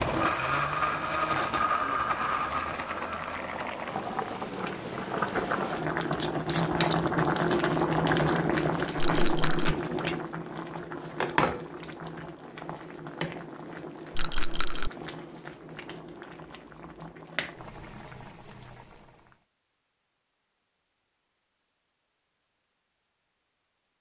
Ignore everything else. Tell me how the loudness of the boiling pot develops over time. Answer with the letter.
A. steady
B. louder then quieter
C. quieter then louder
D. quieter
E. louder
B.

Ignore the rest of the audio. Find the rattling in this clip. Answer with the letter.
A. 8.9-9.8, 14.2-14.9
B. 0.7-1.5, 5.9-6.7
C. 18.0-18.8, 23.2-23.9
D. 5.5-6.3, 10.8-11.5
A.